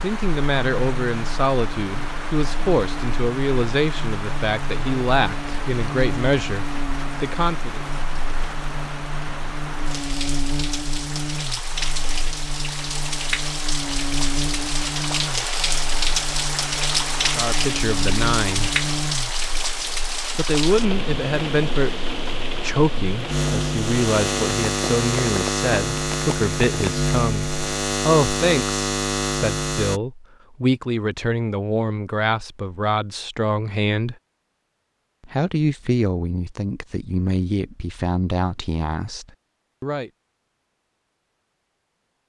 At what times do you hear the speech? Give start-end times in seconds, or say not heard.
0.0-7.8, 17.4-18.8, 20.4-27.4, 28.1-34.1, 35.2-40.1.